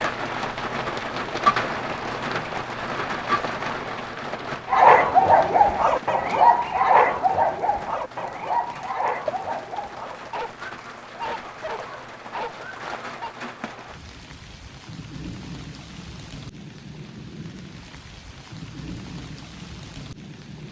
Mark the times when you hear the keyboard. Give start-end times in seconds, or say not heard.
not heard.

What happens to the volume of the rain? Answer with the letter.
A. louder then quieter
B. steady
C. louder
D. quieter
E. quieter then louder
D.